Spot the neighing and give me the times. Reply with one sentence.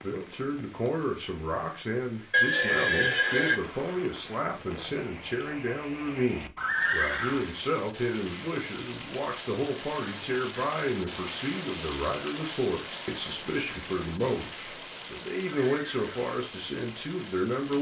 The neighing can be heard from 2.3 to 3.6 s, from 6.5 to 7.5 s and from 15.4 to 16.2 s.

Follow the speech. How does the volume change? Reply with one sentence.
The volume of the speech stays about the same.